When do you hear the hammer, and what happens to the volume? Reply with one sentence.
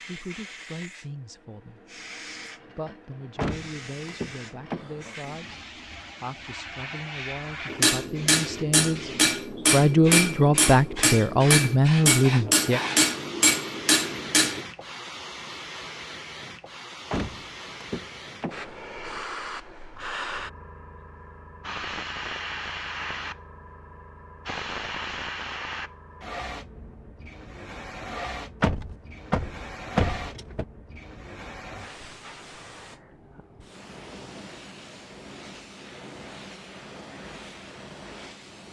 You can hear the hammer from 7.7 to 14.7 s, at a steady volume.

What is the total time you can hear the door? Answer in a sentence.
The door can be heard for 6 seconds in total.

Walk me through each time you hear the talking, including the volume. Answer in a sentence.
You can hear the talking briefly from 0.1 to 1.8 s; and from 2.8 to 12.8 s, getting louder.